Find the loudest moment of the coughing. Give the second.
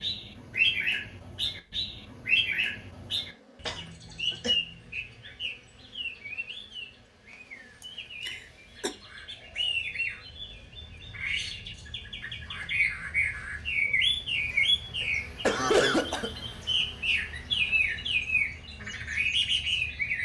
16 s.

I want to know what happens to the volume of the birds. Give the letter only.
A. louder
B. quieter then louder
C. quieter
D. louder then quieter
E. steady
B.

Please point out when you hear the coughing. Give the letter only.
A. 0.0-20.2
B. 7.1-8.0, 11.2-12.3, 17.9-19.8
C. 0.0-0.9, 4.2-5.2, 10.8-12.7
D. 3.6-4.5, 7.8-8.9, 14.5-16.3
D.